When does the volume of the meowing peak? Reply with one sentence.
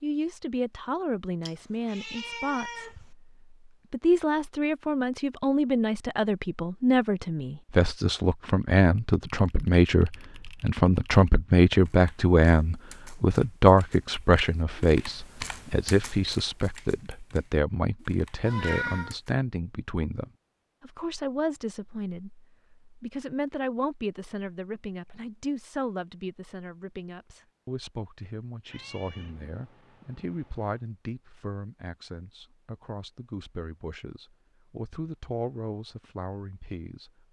The loudest moment of the meowing is at 19 seconds.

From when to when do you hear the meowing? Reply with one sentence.
The meowing can be heard from 1.4 to 3.0 s, from 18.4 to 19.1 s and from 28.6 to 30.8 s.